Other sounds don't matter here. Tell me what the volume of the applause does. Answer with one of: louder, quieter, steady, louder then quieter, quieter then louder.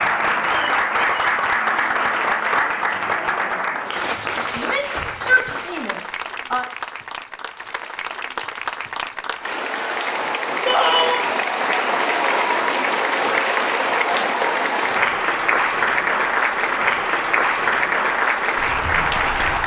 quieter then louder.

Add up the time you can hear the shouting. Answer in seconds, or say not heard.
3 s.